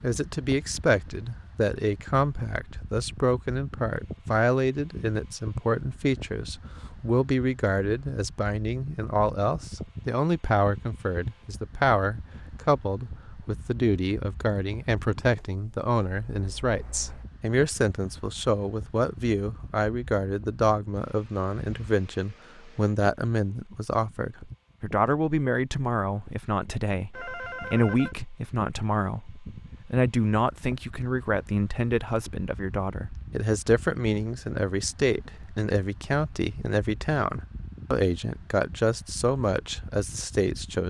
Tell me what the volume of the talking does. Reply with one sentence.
The volume of the talking stays about the same.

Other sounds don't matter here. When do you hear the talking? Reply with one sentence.
The talking can be heard from 0.0 to 40.8 s.